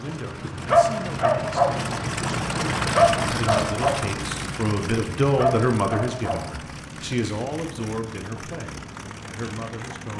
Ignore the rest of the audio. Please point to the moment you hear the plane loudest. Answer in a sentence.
The volume of the plane peaks at 3 seconds.